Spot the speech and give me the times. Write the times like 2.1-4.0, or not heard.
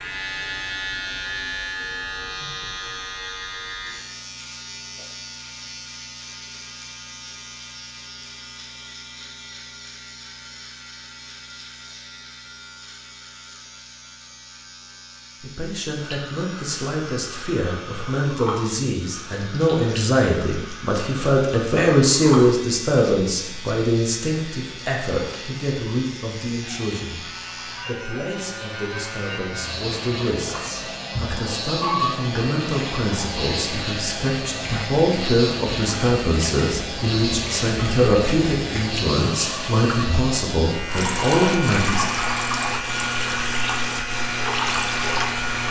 15.4-42.0.